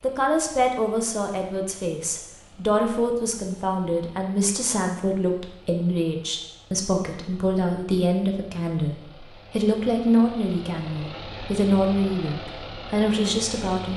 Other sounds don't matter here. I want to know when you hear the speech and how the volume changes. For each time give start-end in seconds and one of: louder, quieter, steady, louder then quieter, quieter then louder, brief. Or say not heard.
0.0-13.9 steady.